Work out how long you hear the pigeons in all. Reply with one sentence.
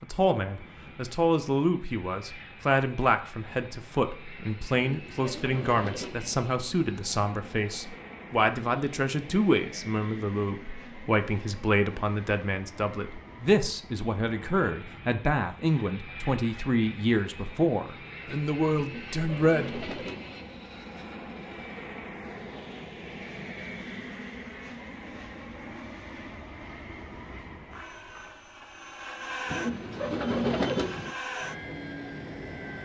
The pigeons can be heard for 5 seconds in total.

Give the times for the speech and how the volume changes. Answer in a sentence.
The speech can be heard from 0.0 to 19.9 s, at a steady volume.